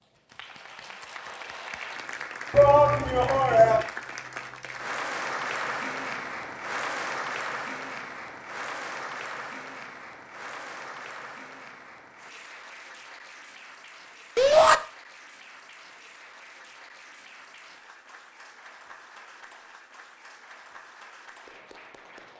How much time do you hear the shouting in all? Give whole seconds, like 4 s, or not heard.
2 s.